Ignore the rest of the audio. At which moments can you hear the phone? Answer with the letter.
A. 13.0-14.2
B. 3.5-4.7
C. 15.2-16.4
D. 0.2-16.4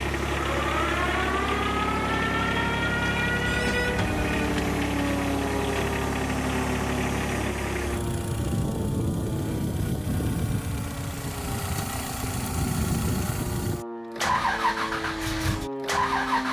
B.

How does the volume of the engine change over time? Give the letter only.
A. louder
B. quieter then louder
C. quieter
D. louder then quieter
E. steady
E.